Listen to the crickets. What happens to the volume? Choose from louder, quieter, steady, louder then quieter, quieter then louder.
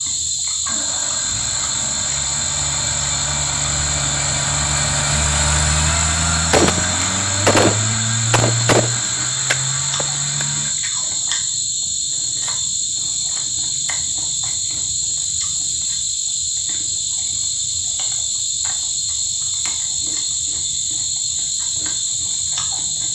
steady.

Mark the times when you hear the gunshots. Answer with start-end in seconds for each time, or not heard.
6.5-10.4.